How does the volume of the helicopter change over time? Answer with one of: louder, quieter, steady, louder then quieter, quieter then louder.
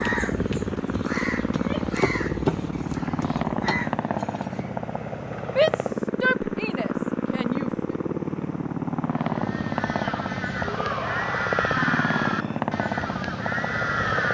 steady.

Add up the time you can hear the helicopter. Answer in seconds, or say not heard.
14 s.